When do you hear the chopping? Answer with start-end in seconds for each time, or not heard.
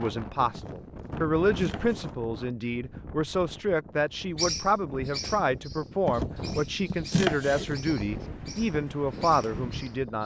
0.5-2.1, 6.0-8.1.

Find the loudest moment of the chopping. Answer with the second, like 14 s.
7 s.